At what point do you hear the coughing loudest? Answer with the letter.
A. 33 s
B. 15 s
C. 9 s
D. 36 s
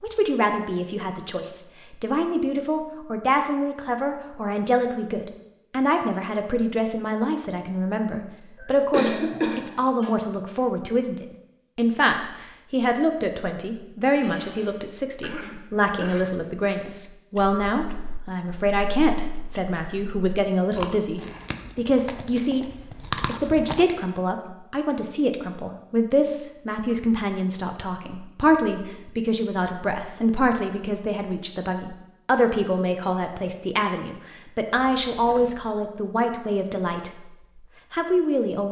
C.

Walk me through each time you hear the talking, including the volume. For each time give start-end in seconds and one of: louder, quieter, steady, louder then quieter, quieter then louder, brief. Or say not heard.
0.0-37.3 steady
37.9-38.6 brief.